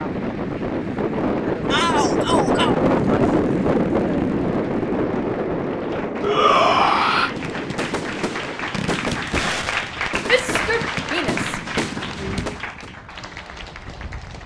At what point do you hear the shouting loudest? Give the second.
7 s.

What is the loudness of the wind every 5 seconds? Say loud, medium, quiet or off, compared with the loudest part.
loud, medium, quiet.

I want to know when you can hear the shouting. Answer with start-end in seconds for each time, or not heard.
1.7-2.8, 6.2-7.3, 10.2-12.6.